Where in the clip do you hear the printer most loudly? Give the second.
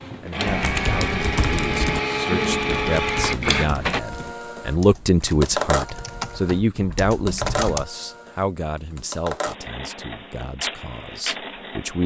3 s.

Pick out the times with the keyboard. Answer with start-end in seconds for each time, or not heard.
0.5-7.8.